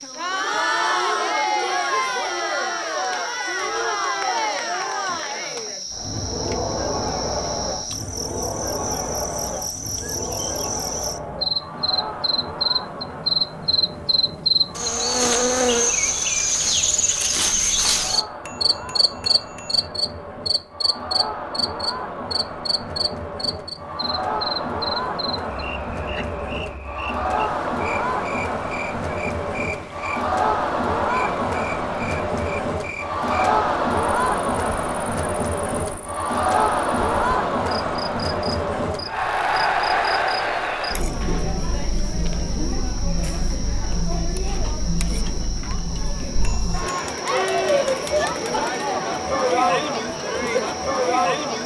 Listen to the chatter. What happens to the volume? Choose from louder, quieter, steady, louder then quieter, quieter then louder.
quieter then louder.